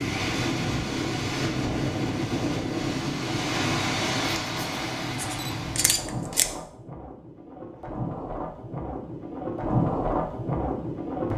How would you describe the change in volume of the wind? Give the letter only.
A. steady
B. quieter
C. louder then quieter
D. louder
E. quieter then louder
E.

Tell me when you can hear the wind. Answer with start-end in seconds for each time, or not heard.
0.0-11.3.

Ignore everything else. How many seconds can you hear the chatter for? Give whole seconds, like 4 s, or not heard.
not heard.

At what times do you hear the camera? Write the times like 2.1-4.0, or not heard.
5.2-6.5.